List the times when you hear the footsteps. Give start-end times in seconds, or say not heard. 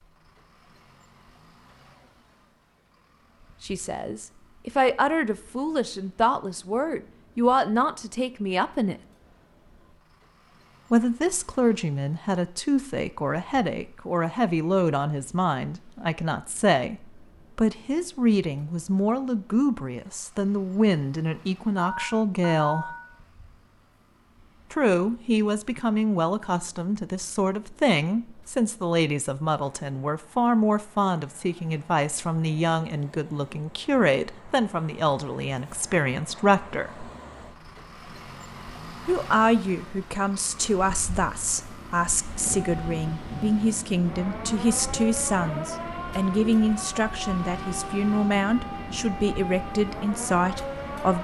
not heard.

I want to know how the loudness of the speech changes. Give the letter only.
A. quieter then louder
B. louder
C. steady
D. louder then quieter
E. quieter
C.